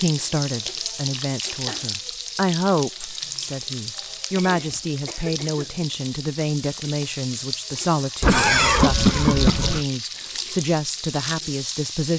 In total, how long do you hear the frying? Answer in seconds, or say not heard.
12 s.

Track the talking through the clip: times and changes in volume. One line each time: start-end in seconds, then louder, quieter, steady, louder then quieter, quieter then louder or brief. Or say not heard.
0.0-12.1 steady.